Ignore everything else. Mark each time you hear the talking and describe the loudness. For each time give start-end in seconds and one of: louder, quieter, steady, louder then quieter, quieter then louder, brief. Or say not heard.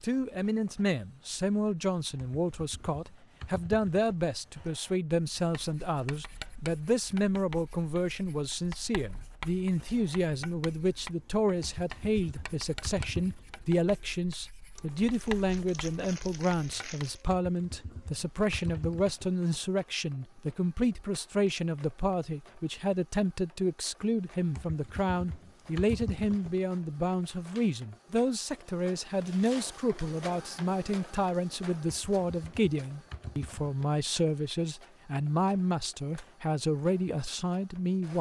0.0-38.1 steady.